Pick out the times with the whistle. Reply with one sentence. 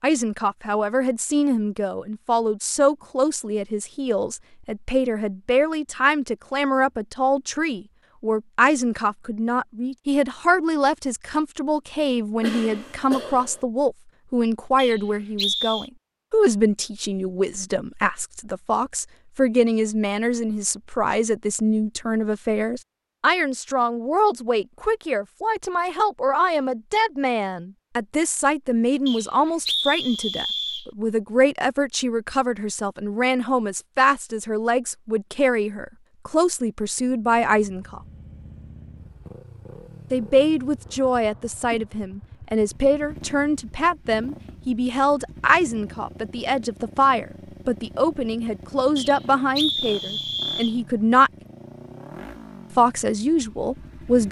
The whistle can be heard from 14.8 to 15.9 s, from 29.1 to 30.9 s and from 49.0 to 50.8 s.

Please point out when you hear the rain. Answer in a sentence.
You can't hear the rain here.